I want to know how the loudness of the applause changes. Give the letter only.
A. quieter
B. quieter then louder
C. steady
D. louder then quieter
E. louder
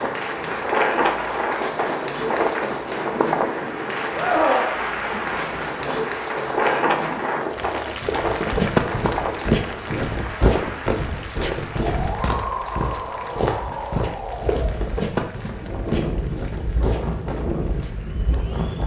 A.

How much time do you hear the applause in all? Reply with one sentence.
You can hear the applause for 19 seconds altogether.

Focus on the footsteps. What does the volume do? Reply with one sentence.
The volume of the footsteps goes down.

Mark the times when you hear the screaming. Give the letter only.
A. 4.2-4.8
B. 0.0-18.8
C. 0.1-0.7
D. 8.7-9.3
A.